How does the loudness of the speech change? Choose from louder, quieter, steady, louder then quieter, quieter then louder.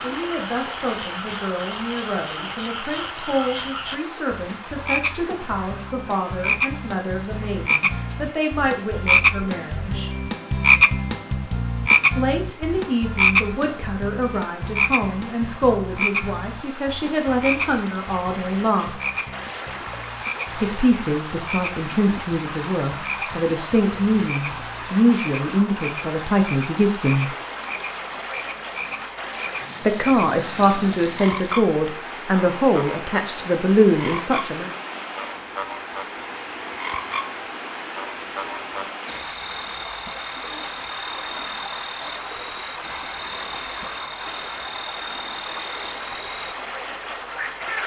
louder.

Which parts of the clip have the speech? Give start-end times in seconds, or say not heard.
0.0-10.2, 12.2-19.0, 20.6-27.3, 29.9-34.7.